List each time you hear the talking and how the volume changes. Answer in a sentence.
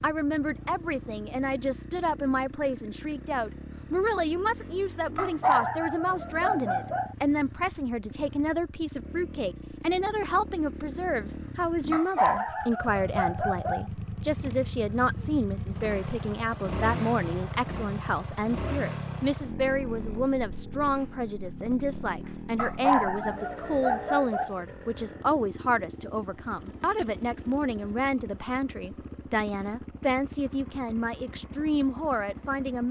The talking can be heard from 0.0 to 32.8 s, at a steady volume.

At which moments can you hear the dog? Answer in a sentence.
The dog can be heard from 5.2 to 7.2 s, from 11.9 to 13.9 s and from 22.6 to 24.6 s.